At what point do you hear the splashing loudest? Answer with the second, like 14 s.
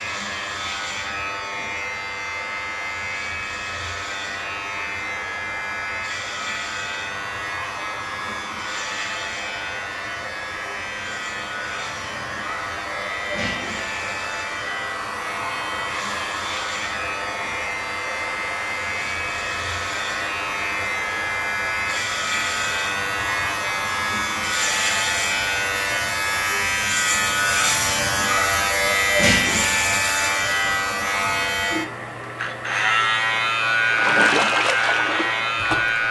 34 s.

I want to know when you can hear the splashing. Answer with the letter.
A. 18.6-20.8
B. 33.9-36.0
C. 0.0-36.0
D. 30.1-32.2
B.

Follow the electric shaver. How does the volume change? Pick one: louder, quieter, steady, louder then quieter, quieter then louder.
louder.